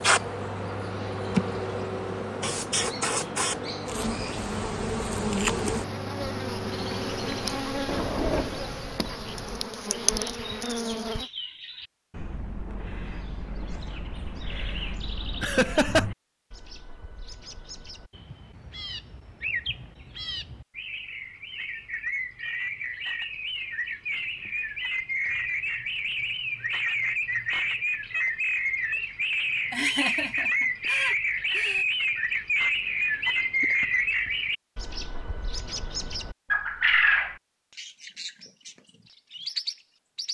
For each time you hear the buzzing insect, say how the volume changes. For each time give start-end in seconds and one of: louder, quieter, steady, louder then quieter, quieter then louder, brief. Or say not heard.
0.0-11.2 steady.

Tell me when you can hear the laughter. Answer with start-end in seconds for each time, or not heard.
15.4-16.1, 29.7-31.9.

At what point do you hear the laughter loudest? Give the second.
16 s.